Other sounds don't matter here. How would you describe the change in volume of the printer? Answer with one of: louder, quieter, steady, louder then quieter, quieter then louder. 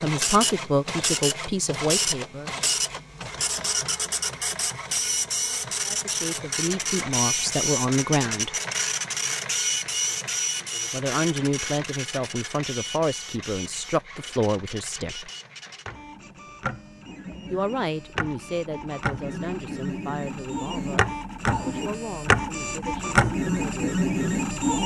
quieter then louder.